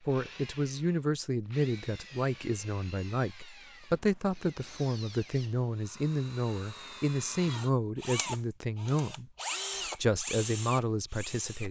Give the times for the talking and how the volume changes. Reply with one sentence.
The talking can be heard from 0.1 to 11.6 s, at a steady volume.